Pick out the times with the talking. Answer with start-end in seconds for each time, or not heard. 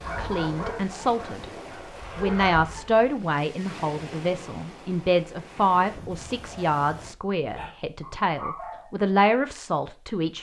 0.1-1.4, 2.1-10.3.